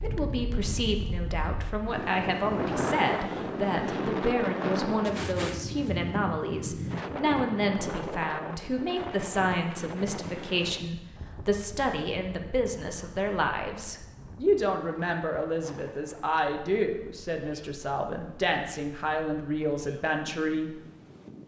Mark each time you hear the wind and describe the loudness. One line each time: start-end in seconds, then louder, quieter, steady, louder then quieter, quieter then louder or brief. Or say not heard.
0.0-21.4 quieter.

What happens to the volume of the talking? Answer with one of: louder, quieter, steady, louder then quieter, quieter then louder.
steady.